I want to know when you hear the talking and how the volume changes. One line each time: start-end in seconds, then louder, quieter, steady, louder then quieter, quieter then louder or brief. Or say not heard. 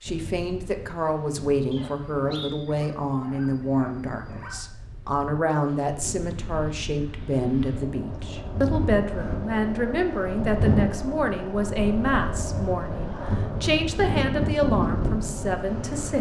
0.0-16.1 steady.